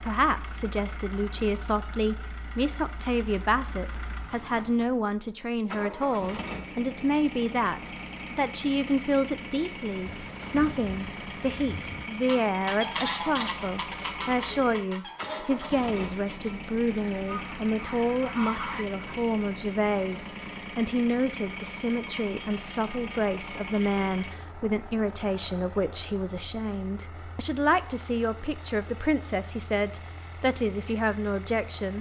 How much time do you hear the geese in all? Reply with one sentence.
You can hear the geese for 7 seconds altogether.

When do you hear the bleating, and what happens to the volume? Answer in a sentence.
You can't hear the bleating here.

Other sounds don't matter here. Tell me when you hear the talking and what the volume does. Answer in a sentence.
The talking can be heard from 0.0 to 31.9 s, at a steady volume.